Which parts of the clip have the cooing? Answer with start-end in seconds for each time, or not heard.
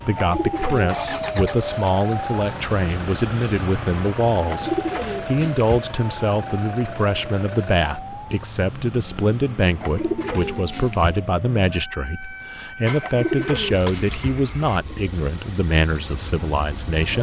0.1-1.4, 4.5-5.9, 9.8-11.2, 13.0-14.4.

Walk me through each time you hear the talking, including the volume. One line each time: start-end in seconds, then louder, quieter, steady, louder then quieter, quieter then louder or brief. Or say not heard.
0.1-17.1 steady.